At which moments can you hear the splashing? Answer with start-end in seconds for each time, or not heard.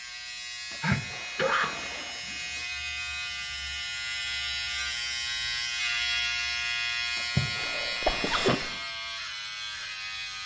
0.7-2.6, 7.2-8.9.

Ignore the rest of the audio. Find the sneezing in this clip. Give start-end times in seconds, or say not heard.
0.8-1.8, 7.6-8.8.